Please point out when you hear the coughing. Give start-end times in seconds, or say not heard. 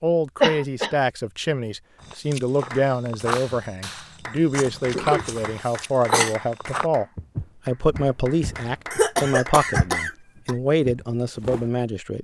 0.4-0.9, 4.9-6.3, 8.9-10.6.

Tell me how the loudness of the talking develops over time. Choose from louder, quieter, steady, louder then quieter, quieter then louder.
steady.